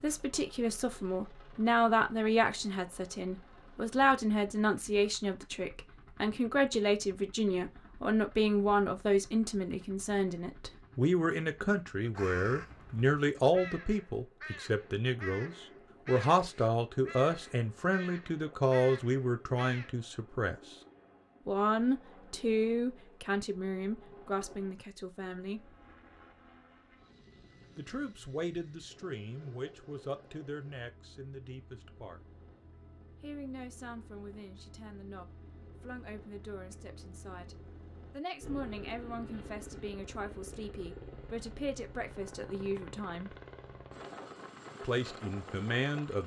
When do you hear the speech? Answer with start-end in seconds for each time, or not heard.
0.0-20.8, 21.4-25.8, 27.8-32.2, 33.2-43.4, 44.8-46.2.